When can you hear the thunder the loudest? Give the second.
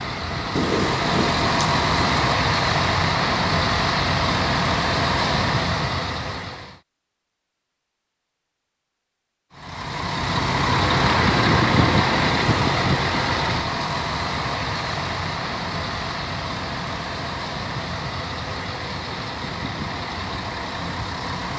1 s.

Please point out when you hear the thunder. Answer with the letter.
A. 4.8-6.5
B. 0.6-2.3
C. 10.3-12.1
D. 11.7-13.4
B.